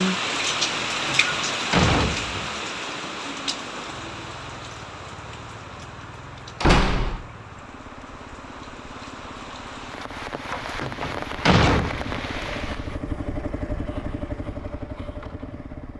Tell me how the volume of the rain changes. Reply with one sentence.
The loudness of the rain goes down, then up.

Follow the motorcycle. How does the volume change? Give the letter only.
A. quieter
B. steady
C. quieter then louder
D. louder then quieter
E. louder
E.